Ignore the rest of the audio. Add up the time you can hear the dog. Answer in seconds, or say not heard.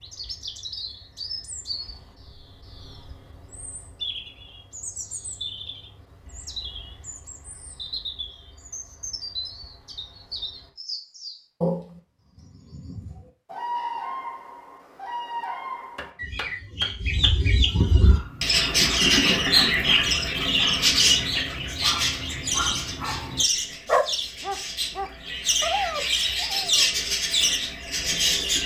9 s.